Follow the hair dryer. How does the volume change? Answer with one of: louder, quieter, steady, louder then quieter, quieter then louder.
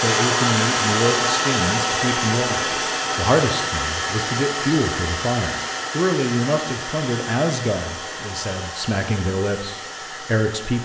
quieter.